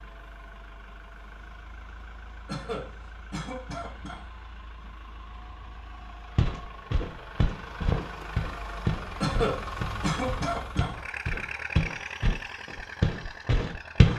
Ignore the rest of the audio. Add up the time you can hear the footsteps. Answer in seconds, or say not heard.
8 s.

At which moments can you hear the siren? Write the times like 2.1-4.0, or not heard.
not heard.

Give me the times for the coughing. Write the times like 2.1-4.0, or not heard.
2.5-4.2, 9.2-10.9.